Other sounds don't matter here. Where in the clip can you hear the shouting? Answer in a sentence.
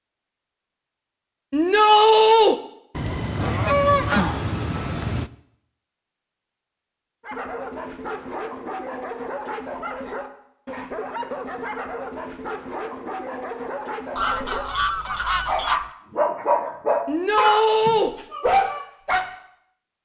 You can hear the shouting from 1.5 to 2.5 s and from 17.1 to 18.1 s.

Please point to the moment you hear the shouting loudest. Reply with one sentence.
The volume of the shouting peaks at 2 seconds.